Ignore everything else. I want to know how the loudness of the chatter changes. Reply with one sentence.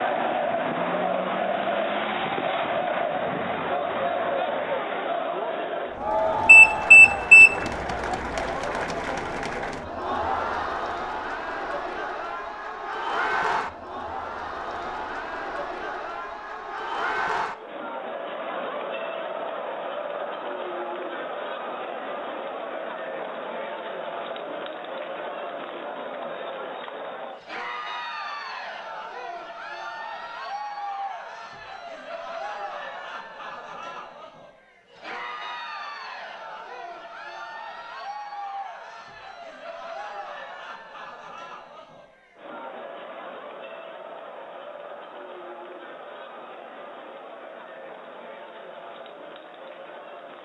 The loudness of the chatter goes down.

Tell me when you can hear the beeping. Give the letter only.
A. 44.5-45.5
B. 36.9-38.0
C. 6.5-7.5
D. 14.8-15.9
C.